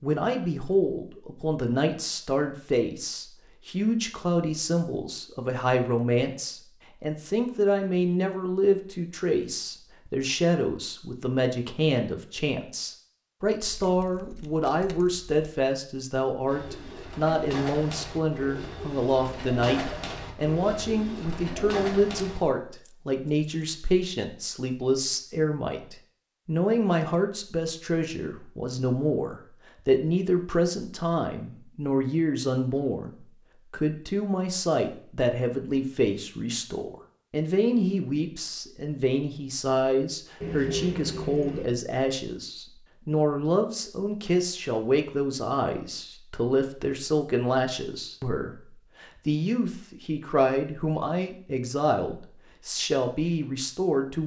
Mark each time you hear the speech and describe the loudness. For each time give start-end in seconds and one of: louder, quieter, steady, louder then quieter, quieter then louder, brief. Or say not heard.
0.0-54.2 steady.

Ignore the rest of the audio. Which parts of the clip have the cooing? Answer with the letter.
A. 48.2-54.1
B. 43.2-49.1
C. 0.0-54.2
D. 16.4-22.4
D.